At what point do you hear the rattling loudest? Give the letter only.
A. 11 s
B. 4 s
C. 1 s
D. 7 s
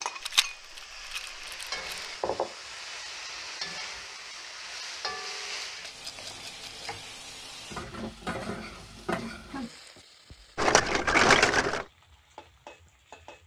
A.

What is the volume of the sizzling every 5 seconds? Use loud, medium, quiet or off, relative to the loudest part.
loud, loud, quiet.